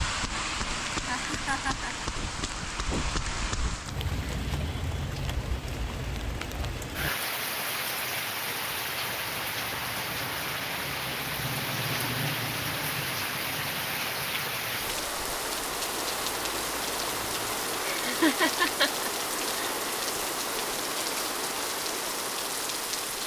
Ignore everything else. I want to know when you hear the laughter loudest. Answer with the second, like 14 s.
18 s.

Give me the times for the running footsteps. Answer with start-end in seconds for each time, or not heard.
not heard.